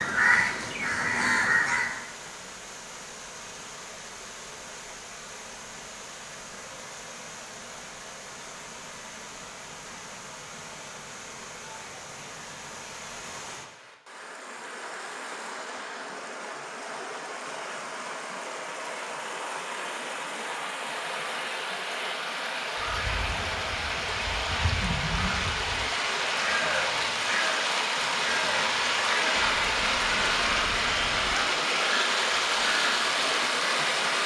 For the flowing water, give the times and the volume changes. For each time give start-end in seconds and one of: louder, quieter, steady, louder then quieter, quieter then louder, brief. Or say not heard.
0.0-34.2 louder.